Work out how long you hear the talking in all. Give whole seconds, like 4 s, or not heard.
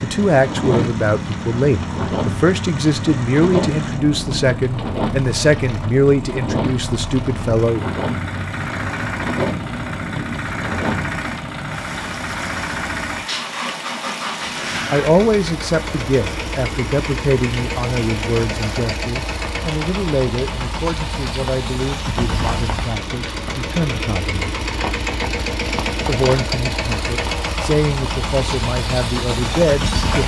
22 s.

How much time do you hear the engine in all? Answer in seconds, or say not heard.
30 s.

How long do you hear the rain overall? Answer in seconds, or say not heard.
30 s.